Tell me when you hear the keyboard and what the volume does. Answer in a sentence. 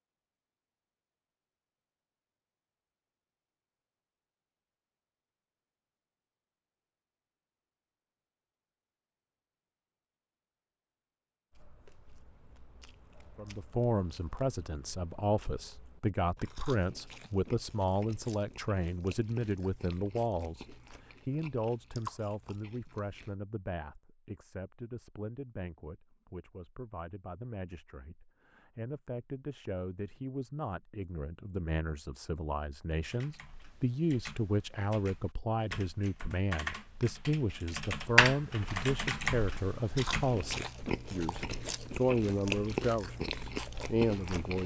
You can hear the keyboard from 33.1 to 40.7 s, getting louder then quieter.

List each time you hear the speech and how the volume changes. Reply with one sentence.
The speech can be heard from 13.3 to 44.6 s, getting quieter then louder.